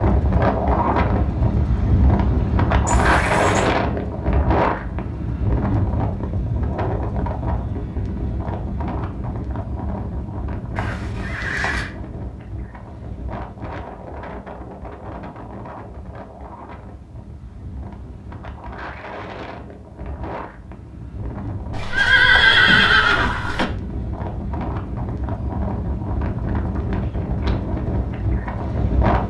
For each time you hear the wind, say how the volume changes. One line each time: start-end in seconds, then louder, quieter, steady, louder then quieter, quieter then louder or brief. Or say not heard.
0.0-29.2 quieter then louder.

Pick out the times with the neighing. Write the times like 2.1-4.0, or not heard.
2.9-3.7, 10.8-11.9, 21.7-23.6.